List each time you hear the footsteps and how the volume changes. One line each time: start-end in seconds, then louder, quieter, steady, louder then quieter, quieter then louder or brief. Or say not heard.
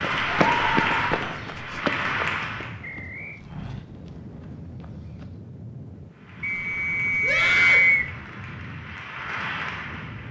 0.0-5.3 quieter.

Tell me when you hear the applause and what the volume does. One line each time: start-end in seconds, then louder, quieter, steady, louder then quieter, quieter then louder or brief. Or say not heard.
0.0-2.8 brief
6.1-10.2 louder.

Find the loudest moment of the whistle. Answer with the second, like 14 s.
8 s.